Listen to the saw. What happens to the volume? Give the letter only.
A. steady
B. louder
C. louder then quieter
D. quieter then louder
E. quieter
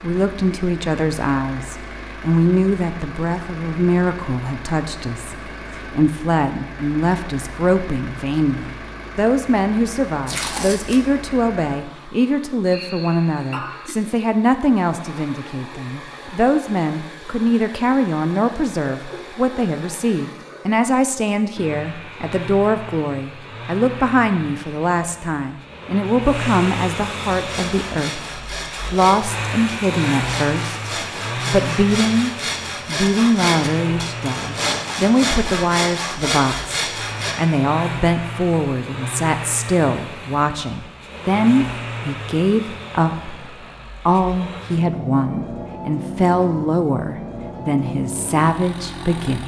B.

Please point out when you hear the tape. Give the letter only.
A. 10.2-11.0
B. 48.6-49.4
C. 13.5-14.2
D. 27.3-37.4
A.